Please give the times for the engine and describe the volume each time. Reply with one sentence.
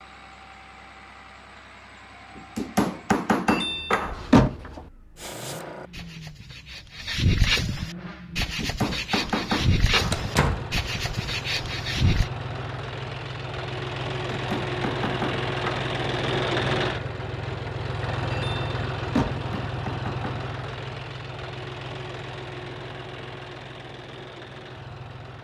You can hear the engine from 0.0 to 25.3 s, getting louder then quieter.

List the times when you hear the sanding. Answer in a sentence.
The sanding can be heard from 5.2 to 12.3 s.